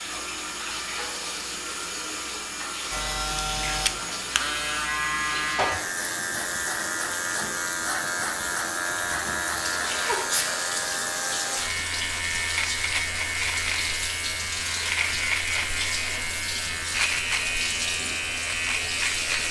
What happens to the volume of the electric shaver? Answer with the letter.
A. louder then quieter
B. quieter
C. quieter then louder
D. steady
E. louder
D.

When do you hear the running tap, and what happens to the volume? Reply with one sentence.
You can hear the running tap from 0.0 to 19.4 s, at a steady volume.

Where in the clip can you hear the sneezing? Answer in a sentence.
You can hear the sneezing from 9.9 to 10.6 s.